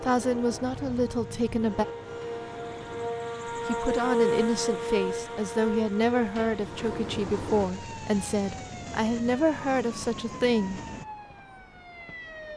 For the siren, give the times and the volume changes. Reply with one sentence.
You can hear the siren from 0.1 to 12.5 s, getting louder then quieter.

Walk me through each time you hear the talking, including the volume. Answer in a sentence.
The talking can be heard briefly from 0.0 to 1.9 s; and from 3.6 to 10.8 s, at a steady volume.